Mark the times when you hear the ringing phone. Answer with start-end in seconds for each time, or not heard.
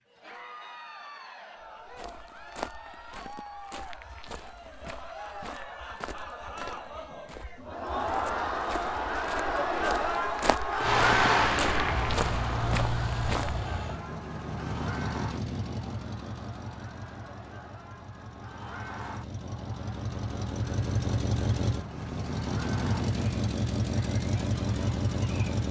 not heard.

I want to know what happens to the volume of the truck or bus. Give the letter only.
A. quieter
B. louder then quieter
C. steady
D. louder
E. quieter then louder
E.